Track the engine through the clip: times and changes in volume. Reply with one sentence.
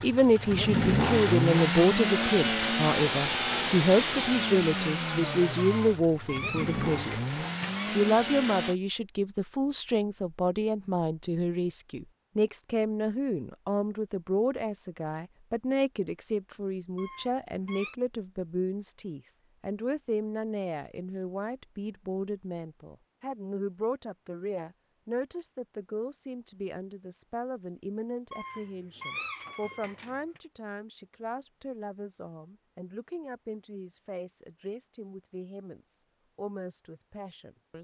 The engine can be heard from 0.0 to 8.8 s, getting quieter.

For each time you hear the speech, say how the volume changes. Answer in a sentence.
The speech can be heard from 0.0 to 37.7 s, getting quieter.